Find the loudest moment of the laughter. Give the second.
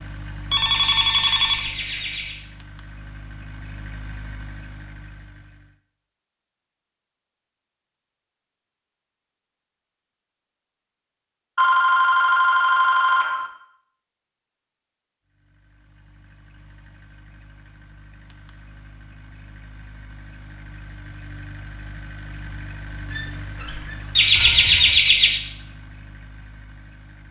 25 s.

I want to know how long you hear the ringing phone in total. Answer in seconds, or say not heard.
5 s.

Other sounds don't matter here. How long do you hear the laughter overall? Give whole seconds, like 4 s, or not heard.
3 s.